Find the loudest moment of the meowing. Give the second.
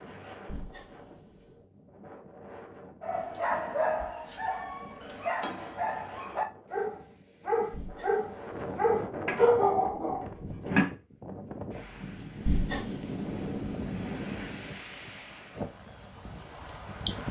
13 s.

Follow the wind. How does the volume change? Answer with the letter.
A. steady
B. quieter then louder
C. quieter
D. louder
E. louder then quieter
D.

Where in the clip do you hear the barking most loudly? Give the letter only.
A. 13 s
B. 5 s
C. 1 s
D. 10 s
D.